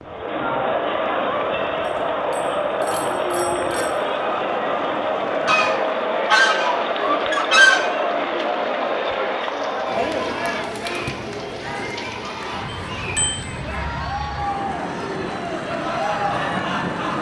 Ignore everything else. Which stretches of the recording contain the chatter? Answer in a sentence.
You can hear the chatter from 0.0 to 17.1 s.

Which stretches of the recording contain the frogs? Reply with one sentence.
You can't hear the frogs here.